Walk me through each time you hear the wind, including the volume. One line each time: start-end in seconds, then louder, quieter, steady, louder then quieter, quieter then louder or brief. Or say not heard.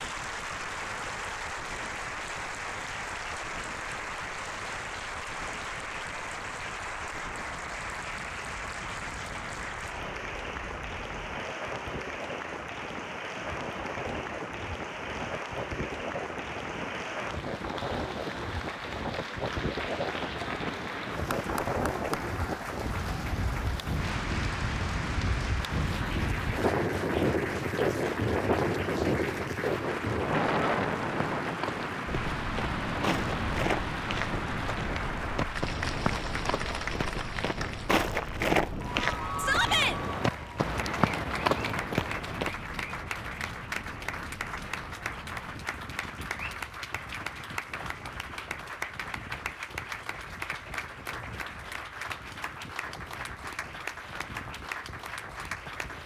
0.0-56.0 louder then quieter.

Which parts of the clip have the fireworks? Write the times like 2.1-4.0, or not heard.
not heard.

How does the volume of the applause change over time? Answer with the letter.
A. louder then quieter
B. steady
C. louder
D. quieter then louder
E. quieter
B.